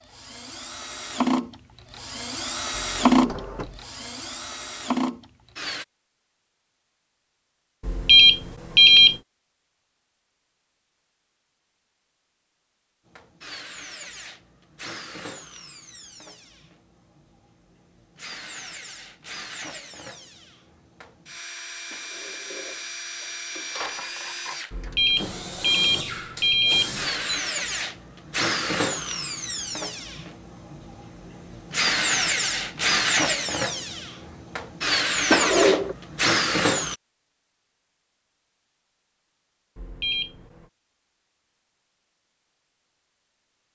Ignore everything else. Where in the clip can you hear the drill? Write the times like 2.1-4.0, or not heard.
0.0-5.8, 13.1-37.0.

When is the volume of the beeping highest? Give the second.
9 s.